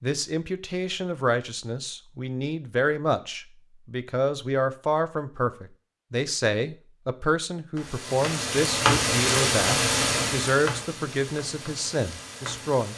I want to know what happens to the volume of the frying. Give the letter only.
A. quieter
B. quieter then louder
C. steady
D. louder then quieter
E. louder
A.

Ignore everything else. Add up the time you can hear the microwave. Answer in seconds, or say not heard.
not heard.